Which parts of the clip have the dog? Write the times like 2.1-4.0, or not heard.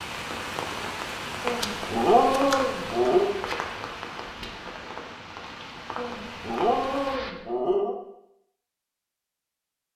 1.4-3.3, 6.0-8.0.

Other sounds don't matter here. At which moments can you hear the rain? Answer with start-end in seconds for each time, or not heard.
0.0-7.3.